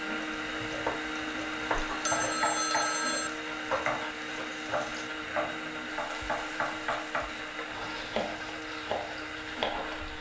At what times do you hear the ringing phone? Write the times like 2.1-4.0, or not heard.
1.9-3.3.